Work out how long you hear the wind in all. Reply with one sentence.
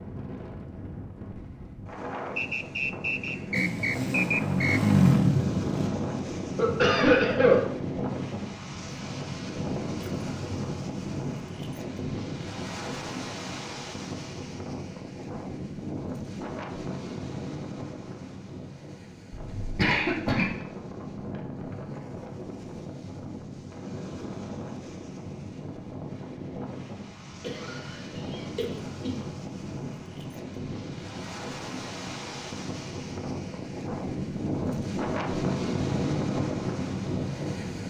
You can hear the wind for 38 seconds altogether.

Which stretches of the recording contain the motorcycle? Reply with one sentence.
The motorcycle can be heard from 3.5 to 5.9 s.